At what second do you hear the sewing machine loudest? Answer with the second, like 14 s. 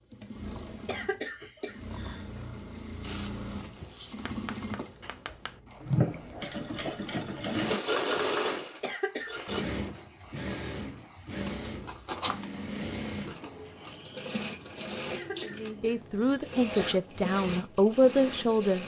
8 s.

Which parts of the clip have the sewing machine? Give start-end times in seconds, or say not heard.
0.0-18.8.